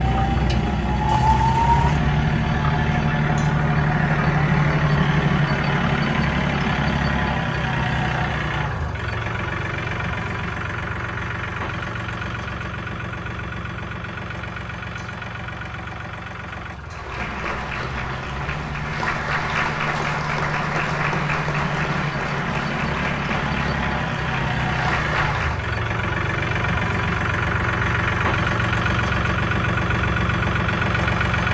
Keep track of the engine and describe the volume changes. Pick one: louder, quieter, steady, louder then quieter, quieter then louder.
quieter then louder.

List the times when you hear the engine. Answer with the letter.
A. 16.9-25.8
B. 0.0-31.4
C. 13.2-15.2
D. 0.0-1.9
B.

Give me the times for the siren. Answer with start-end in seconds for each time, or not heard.
0.0-1.9.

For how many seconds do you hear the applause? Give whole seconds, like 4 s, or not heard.
9 s.